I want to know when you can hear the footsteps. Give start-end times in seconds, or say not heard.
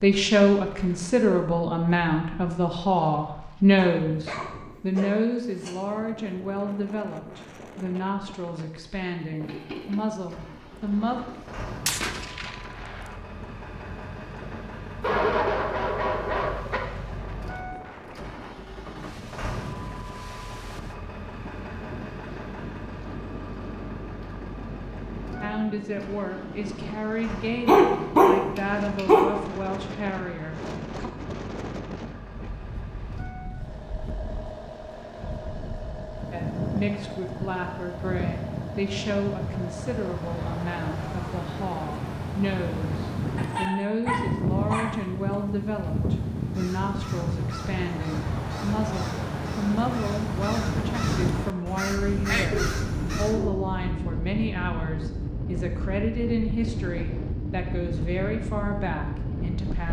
not heard.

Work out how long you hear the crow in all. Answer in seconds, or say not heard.
7 s.